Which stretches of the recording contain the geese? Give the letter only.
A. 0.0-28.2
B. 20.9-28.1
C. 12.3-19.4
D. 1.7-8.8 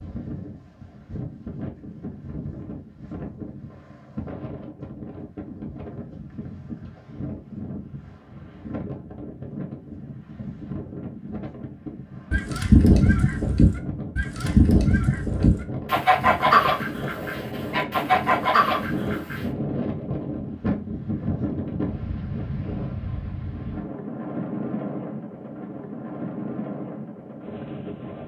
C.